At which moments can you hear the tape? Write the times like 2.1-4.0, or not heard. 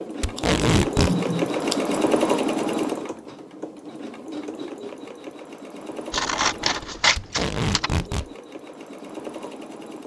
0.2-1.1, 7.2-8.3.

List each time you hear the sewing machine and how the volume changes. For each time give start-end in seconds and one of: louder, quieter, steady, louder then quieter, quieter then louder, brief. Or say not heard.
0.0-10.0 quieter.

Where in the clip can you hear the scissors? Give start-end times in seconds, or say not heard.
0.3-1.9, 6.1-8.1.